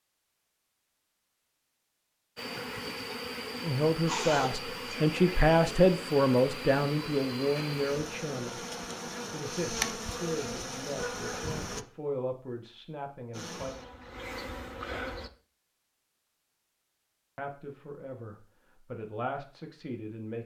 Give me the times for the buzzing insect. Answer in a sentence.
The buzzing insect can be heard from 2.4 to 11.8 s and from 13.3 to 15.3 s.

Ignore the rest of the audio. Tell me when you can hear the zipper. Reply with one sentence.
You can hear the zipper from 4.0 to 5.0 s.